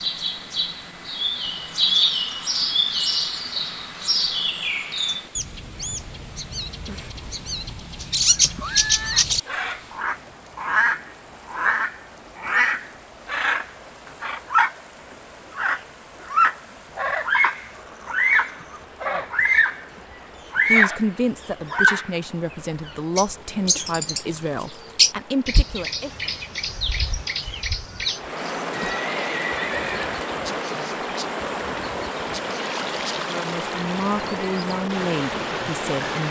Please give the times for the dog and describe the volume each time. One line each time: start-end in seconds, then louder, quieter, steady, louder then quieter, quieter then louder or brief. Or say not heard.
not heard.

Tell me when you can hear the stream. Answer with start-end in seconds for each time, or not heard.
0.0-36.2.